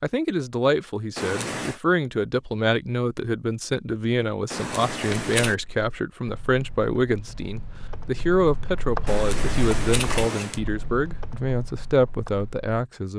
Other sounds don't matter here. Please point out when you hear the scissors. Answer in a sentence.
You can hear the scissors from 1.1 to 1.8 s, from 4.5 to 5.5 s and from 9.1 to 10.6 s.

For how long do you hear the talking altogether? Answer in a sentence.
The talking can be heard for 13 seconds in total.